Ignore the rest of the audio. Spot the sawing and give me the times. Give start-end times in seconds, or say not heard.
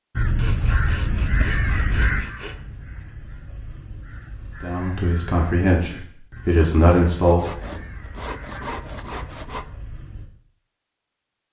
0.3-2.6, 7.2-9.7.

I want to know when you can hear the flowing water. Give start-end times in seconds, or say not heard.
not heard.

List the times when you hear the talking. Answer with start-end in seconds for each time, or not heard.
4.6-7.8.